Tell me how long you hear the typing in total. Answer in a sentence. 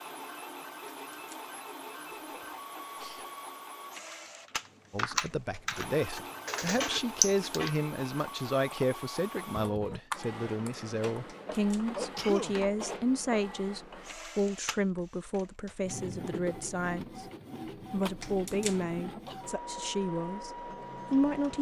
The typing can be heard for 7 seconds in total.